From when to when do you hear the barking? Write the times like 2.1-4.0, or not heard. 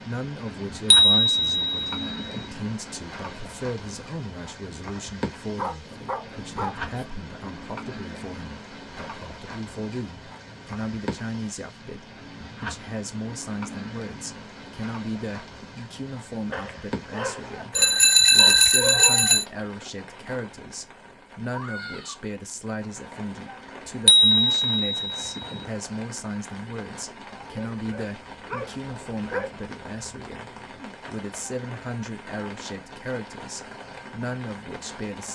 5.5-7.0, 16.5-19.2, 27.5-29.5.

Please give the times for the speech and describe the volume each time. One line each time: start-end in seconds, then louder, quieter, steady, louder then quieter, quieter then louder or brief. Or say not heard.
0.0-35.2 steady.